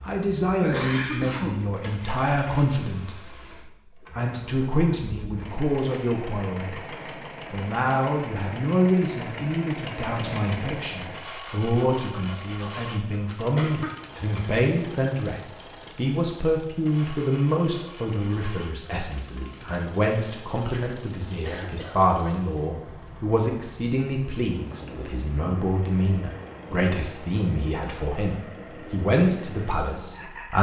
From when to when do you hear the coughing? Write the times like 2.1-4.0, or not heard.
0.6-2.2, 13.6-15.0, 20.7-22.0.